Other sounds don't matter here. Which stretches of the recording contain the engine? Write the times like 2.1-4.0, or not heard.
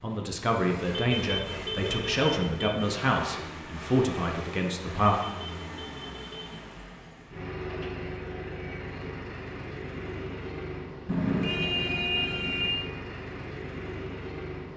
0.0-14.7.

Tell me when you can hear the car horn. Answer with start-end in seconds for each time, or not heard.
0.9-2.7, 5.0-6.6, 11.1-12.8.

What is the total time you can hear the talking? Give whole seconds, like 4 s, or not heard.
5 s.